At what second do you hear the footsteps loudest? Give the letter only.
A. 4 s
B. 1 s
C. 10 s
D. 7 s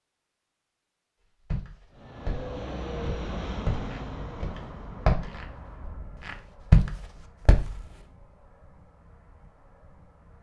D.